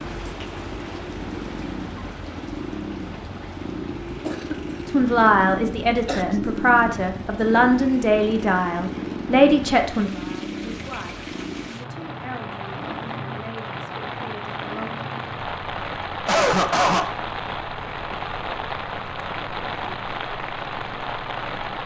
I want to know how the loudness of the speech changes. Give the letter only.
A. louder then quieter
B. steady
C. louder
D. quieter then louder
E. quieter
E.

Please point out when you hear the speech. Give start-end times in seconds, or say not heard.
4.8-14.9.